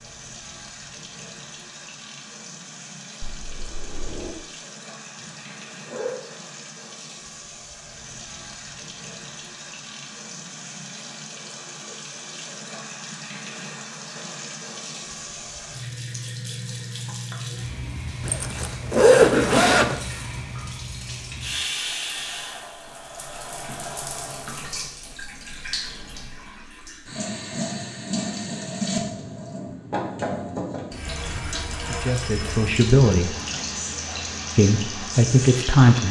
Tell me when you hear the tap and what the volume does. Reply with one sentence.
The tap can be heard from 0.0 to 36.0 s, getting louder.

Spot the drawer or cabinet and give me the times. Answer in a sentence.
The drawer or cabinet can be heard from 3.2 to 4.3 s.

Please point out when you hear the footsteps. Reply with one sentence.
The footsteps can't be heard in this clip.